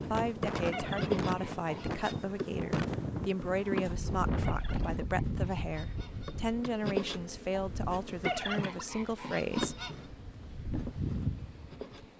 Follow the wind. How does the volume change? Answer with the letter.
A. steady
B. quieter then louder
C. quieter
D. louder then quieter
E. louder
C.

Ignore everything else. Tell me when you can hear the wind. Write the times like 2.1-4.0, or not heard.
0.0-12.1.